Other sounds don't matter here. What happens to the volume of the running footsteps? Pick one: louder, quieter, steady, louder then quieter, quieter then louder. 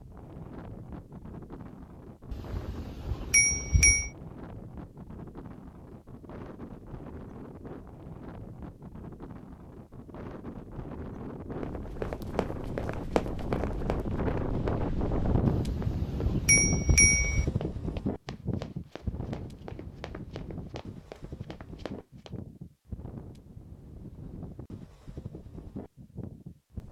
quieter.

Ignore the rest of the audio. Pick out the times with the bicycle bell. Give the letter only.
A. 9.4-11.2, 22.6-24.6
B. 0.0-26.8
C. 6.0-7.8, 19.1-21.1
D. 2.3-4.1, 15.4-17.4
D.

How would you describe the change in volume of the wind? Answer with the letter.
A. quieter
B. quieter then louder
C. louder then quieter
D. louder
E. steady
C.